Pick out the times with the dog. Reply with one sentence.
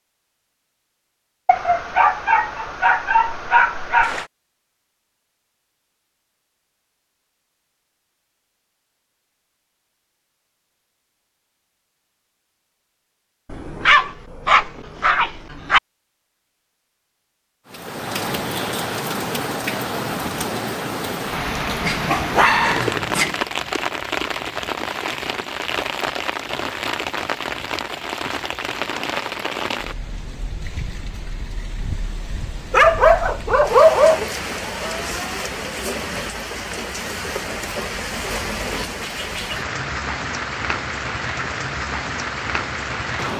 The dog can be heard from 1.4 to 4.2 s, from 13.5 to 15.8 s, from 21.8 to 23.4 s and from 32.7 to 34.3 s.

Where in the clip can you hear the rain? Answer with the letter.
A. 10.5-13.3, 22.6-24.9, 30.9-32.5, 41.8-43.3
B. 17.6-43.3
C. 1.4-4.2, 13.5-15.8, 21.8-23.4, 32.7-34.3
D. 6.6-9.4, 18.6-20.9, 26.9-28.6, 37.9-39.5
B.